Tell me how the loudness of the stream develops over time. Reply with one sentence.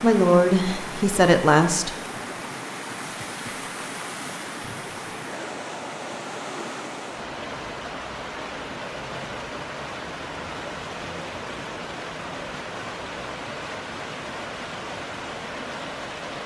The loudness of the stream stays about the same.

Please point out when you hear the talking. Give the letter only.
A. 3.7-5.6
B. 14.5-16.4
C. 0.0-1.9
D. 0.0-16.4
C.